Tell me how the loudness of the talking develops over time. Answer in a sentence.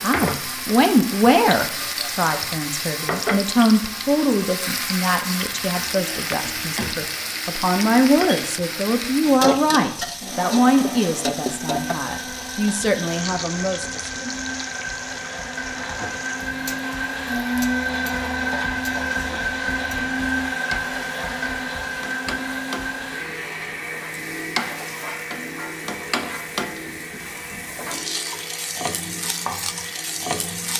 The volume of the talking goes down.